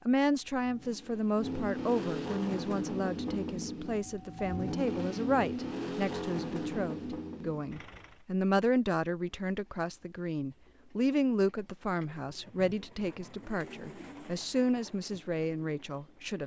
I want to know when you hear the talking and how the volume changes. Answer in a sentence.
The talking can be heard from 0.1 to 16.4 s, at a steady volume.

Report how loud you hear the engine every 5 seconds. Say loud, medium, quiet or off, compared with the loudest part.
loud, loud, off, off.